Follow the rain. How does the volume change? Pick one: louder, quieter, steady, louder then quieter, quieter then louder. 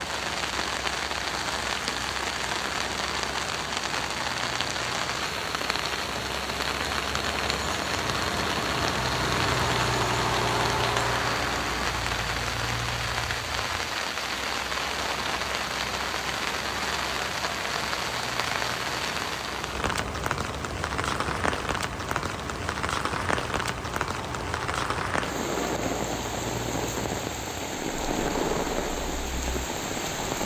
steady.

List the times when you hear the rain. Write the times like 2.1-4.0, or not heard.
0.0-30.4.